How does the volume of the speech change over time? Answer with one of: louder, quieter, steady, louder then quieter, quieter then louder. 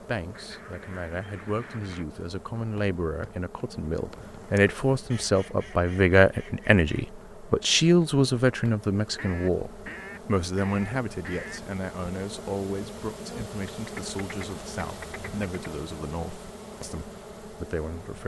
louder then quieter.